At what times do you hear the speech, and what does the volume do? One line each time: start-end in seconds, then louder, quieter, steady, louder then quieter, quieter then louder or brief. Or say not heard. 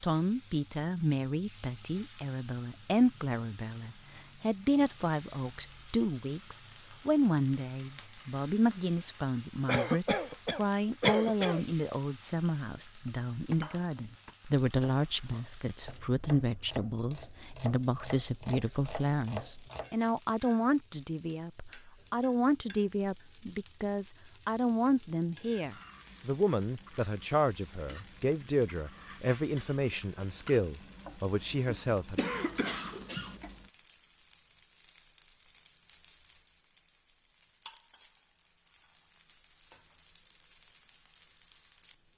0.0-32.2 steady.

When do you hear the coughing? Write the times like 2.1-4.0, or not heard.
9.7-11.7, 32.1-33.4.